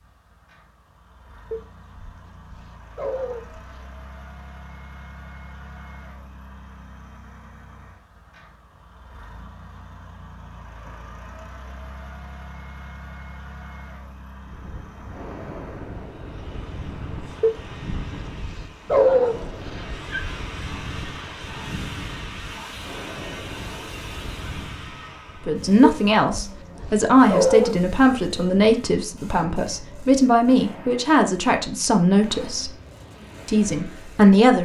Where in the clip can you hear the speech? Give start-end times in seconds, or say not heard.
25.4-32.7, 33.5-34.6.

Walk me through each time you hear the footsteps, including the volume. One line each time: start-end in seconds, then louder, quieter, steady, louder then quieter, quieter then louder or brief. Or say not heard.
not heard.